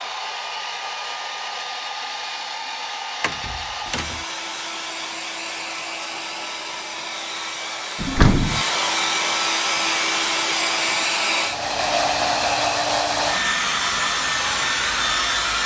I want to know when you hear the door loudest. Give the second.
8 s.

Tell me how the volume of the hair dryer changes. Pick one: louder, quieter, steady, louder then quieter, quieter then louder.
louder.